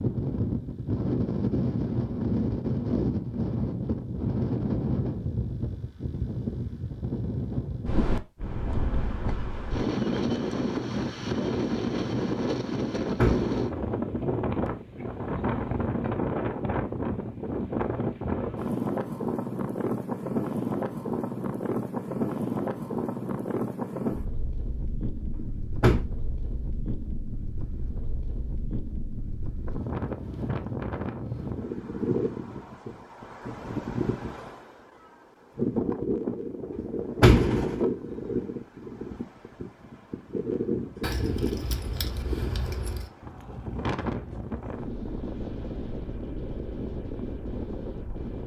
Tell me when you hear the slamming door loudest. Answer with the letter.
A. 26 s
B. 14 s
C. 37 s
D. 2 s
C.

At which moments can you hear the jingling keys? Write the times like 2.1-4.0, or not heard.
41.0-43.1.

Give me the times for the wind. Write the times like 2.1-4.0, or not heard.
0.0-48.4.